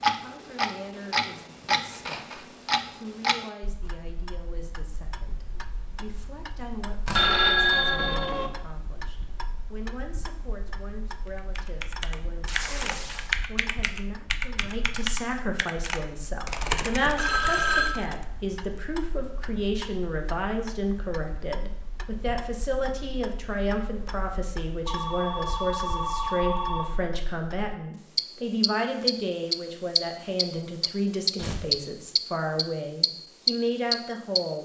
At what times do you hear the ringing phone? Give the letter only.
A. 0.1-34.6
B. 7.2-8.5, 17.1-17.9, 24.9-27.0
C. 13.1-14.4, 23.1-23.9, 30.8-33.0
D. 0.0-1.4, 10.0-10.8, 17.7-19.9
B.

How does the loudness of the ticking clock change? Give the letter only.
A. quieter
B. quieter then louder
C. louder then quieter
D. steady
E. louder
B.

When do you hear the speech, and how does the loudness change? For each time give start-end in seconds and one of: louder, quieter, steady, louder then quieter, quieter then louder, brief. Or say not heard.
0.1-34.6 louder.